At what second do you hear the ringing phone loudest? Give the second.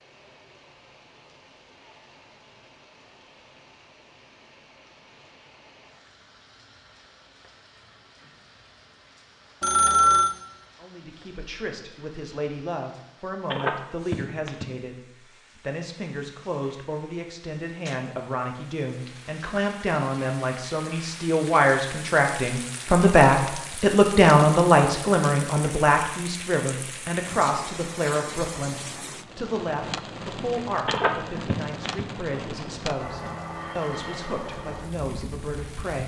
10 s.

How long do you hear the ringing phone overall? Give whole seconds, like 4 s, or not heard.
3 s.